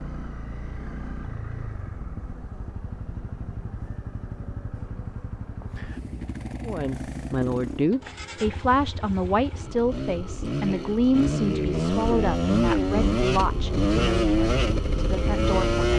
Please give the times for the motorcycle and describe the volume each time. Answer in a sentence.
You can hear the motorcycle from 0.0 to 15.9 s, getting louder.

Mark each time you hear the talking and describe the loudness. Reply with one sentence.
The talking can be heard from 6.7 to 15.9 s, getting quieter.